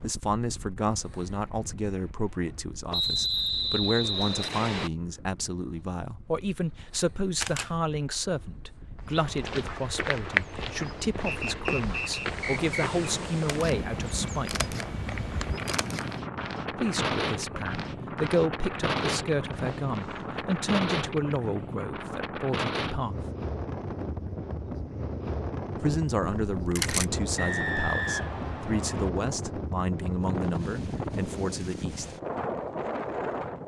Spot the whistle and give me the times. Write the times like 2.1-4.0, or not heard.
2.9-4.9, 11.2-12.8, 27.4-29.1.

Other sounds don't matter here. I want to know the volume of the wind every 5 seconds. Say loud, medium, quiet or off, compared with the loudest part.
quiet, quiet, medium, loud, loud, loud, loud.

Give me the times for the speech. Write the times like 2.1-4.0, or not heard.
0.0-14.7, 16.7-23.2, 25.8-32.1.